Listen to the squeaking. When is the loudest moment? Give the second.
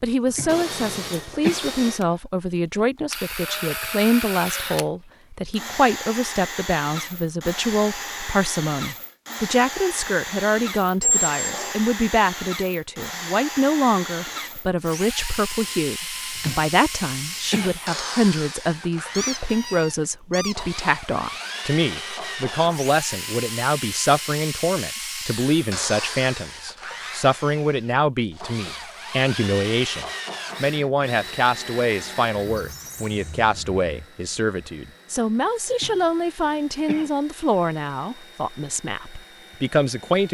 11 s.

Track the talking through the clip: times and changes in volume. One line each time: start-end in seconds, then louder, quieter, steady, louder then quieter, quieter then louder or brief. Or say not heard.
0.0-40.2 steady.